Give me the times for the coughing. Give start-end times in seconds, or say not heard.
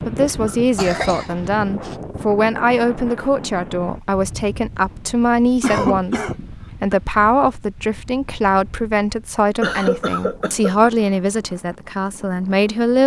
0.5-1.9, 5.6-7.0, 9.6-10.9.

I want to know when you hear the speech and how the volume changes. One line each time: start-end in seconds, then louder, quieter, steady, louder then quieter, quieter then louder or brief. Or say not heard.
0.1-13.0 steady.